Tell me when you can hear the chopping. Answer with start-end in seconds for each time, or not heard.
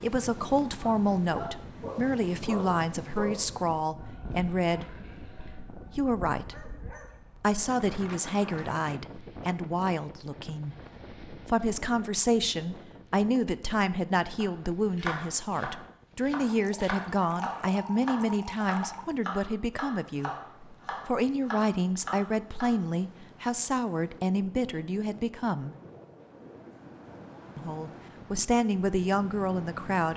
14.4-22.8.